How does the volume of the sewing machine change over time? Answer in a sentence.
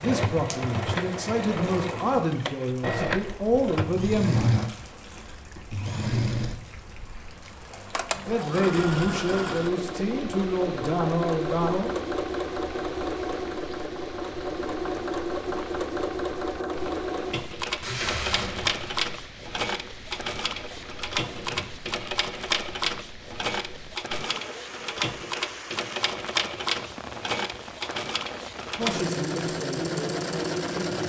The loudness of the sewing machine stays about the same.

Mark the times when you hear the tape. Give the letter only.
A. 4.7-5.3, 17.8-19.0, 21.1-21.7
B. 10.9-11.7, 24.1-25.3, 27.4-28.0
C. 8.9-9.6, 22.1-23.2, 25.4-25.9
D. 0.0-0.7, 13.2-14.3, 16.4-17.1
A.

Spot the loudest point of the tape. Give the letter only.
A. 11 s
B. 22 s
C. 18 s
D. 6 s
C.